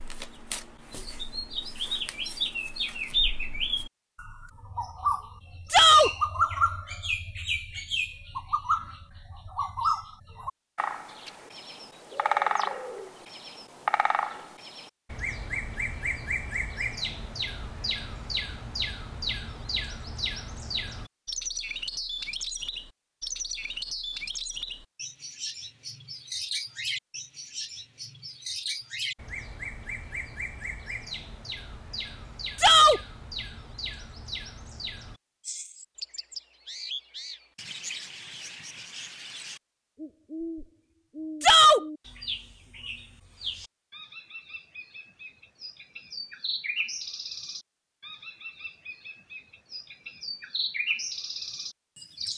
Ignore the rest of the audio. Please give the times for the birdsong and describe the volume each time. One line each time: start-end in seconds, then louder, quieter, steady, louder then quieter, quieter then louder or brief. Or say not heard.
0.0-52.3 quieter.